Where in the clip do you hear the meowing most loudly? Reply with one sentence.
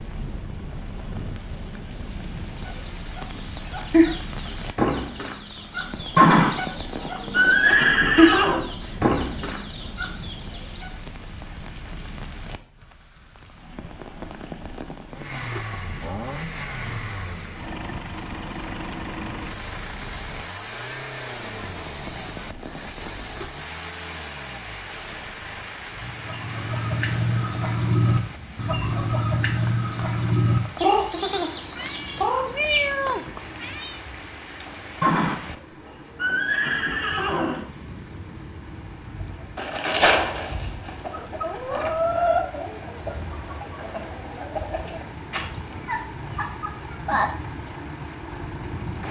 The loudest moment of the meowing is at 33 seconds.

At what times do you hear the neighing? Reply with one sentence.
The neighing can be heard from 6.2 to 8.7 s and from 35.0 to 37.6 s.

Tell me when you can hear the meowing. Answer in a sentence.
You can hear the meowing from 31.8 to 34.0 s.